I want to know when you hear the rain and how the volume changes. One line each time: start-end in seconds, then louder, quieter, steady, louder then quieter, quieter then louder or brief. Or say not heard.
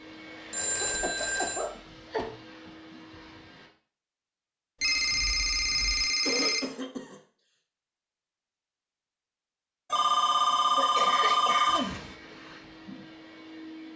not heard.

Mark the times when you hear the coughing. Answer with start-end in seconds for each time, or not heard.
0.7-2.3, 5.8-7.2, 10.8-11.9.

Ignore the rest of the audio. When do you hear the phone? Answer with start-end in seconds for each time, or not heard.
0.5-1.6, 4.8-6.6, 9.9-11.8.